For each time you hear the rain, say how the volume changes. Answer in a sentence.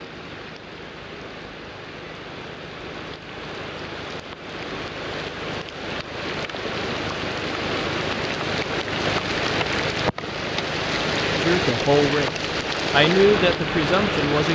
You can hear the rain from 0.0 to 14.5 s, getting louder.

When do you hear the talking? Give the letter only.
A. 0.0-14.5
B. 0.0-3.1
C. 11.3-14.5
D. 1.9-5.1
C.